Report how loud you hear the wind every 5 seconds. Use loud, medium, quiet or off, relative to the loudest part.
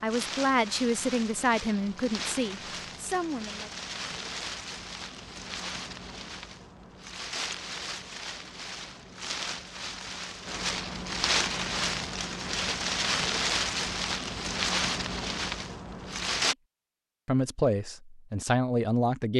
medium, medium, loud, loud.